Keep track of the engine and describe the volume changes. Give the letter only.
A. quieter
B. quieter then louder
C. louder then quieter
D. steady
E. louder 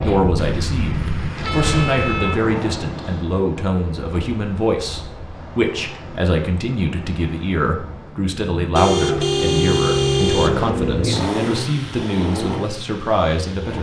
C.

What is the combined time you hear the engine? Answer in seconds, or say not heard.
6 s.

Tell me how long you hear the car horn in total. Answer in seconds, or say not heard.
4 s.